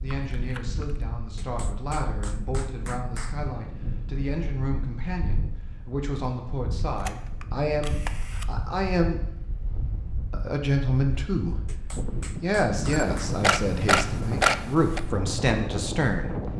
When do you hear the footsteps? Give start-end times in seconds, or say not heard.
not heard.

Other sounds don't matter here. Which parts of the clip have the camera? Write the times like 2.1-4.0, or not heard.
0.1-1.1, 7.0-8.4, 12.9-15.0.